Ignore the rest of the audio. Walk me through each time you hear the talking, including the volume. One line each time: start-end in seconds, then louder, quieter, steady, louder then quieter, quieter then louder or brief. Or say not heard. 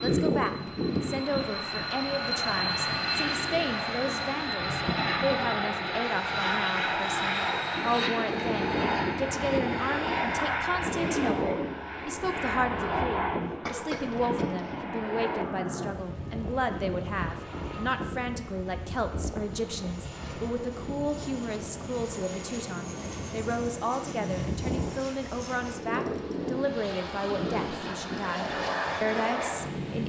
0.0-30.0 steady.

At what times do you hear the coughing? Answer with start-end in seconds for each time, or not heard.
13.7-14.8.